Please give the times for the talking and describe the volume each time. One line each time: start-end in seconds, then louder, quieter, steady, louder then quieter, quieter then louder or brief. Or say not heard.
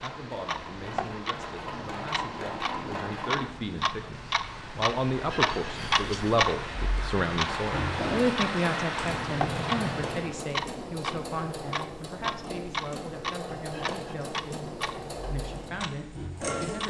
0.0-16.8 louder then quieter.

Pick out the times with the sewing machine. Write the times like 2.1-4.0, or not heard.
0.0-3.5, 7.4-16.8.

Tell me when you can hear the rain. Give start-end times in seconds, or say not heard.
0.0-10.4.